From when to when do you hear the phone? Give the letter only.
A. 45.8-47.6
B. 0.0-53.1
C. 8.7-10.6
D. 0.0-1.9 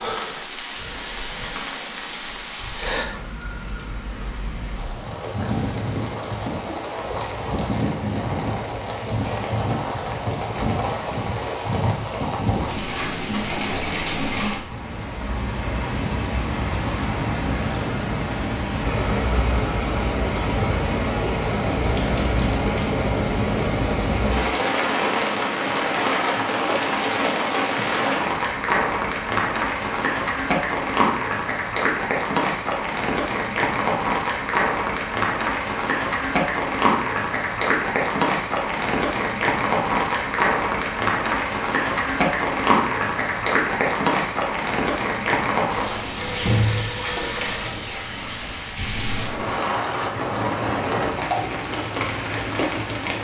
A.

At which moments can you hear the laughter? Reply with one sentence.
You can't hear the laughter here.